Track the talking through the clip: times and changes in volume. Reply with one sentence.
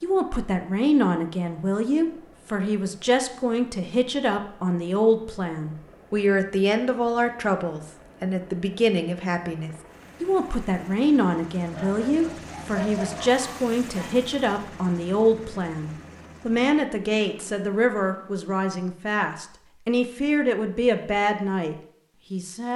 The talking can be heard from 0.0 to 22.7 s, at a steady volume.